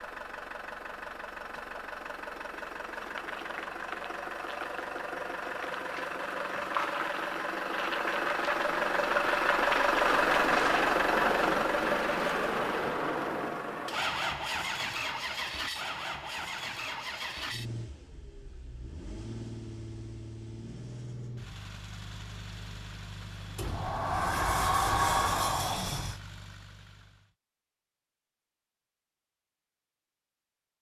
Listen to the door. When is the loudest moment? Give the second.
25 s.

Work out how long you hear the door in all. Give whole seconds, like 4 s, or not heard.
3 s.